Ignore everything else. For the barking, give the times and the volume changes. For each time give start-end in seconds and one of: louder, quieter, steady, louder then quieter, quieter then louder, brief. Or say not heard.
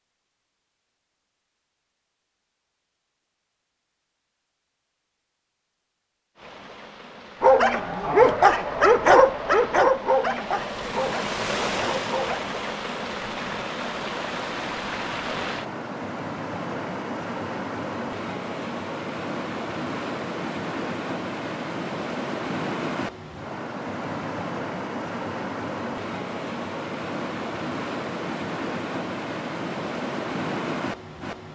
7.4-12.4 quieter.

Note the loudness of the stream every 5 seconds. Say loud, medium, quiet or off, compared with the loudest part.
off, quiet, loud, loud, loud, loud, loud.